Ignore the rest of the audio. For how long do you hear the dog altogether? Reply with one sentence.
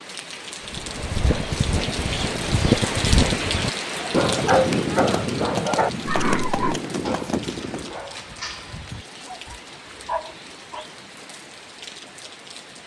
The dog can be heard for 7 seconds in total.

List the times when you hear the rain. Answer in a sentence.
The rain can be heard from 0.0 to 12.8 s.